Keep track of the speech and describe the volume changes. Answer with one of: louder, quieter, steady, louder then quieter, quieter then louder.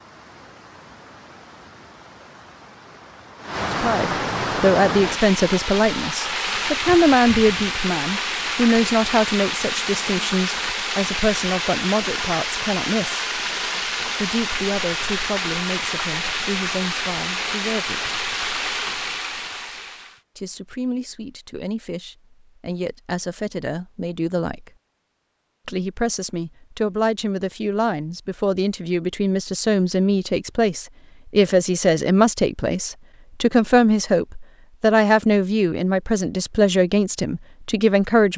quieter then louder.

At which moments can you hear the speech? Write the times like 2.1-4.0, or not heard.
3.6-13.2, 14.2-18.1, 20.4-24.7, 25.6-38.3.